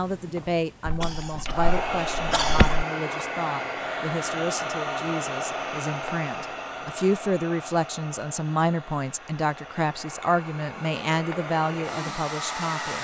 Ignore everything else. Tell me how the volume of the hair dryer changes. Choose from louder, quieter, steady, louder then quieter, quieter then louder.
quieter then louder.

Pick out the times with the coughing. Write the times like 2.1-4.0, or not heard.
0.8-2.9.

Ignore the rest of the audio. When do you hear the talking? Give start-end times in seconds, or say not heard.
0.0-12.9.